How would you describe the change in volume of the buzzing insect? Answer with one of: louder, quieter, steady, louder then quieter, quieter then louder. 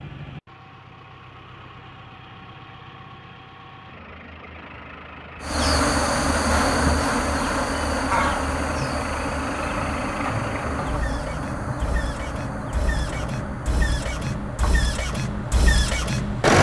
quieter.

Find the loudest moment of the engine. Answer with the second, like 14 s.
16 s.